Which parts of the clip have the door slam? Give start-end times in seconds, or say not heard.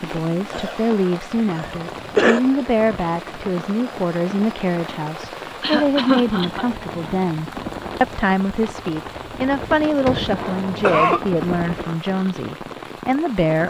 9.8-10.4.